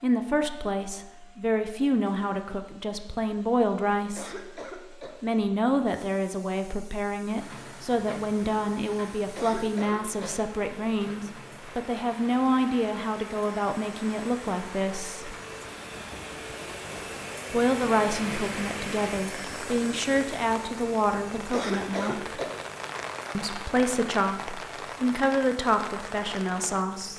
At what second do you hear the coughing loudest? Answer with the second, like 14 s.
22 s.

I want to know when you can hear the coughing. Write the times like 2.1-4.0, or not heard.
4.0-5.2, 9.2-10.4, 21.4-22.6.